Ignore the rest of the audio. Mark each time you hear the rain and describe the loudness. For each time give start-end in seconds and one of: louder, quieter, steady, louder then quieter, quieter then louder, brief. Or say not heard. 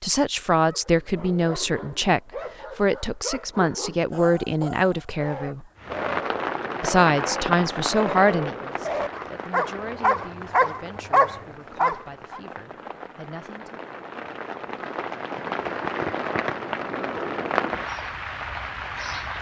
5.8-19.3 quieter then louder.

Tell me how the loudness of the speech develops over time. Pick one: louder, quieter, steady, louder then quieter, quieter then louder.
quieter.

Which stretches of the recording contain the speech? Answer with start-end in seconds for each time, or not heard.
0.0-5.7, 6.8-13.9.